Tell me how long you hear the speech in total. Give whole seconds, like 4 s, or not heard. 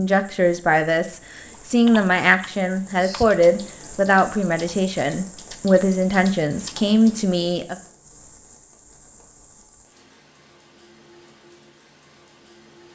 8 s.